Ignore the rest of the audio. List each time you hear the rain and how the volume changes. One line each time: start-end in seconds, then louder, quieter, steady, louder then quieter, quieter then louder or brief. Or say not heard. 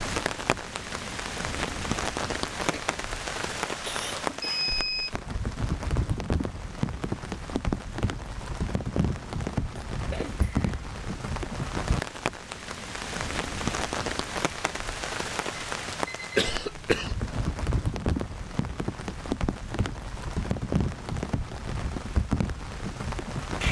0.0-23.6 steady.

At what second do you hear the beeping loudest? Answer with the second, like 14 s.
5 s.